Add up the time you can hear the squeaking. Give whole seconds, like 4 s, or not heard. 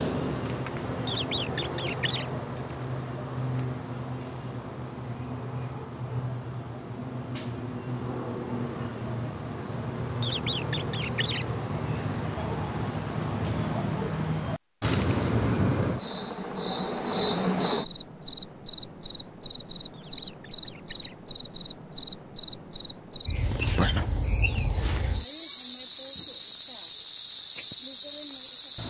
4 s.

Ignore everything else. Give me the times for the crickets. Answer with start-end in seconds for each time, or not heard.
0.0-28.8.